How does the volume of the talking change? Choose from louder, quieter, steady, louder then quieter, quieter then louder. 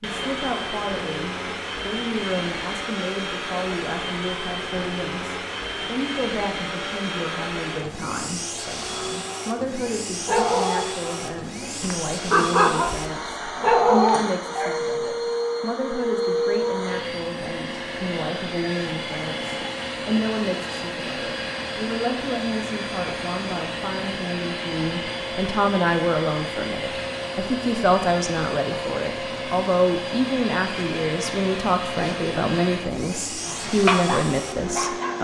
louder.